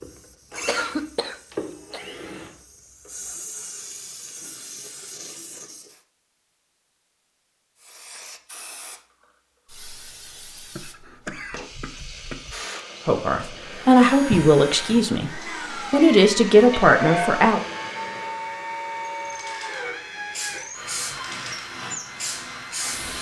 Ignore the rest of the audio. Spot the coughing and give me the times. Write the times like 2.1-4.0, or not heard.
0.7-2.0, 10.8-12.6, 16.7-17.4.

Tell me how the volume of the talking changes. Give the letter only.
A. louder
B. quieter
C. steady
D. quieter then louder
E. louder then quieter
D.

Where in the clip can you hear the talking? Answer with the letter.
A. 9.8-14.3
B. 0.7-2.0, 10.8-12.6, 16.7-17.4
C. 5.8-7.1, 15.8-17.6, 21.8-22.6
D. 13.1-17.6
D.